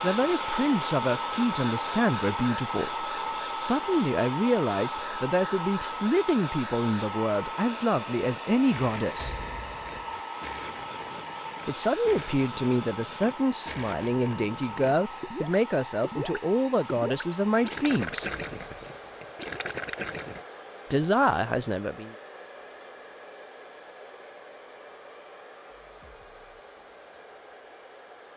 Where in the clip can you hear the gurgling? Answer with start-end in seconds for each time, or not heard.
8.7-20.4.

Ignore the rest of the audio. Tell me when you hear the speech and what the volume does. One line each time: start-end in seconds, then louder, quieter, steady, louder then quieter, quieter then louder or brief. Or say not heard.
0.0-9.3 steady
11.7-18.3 steady
20.9-22.1 brief.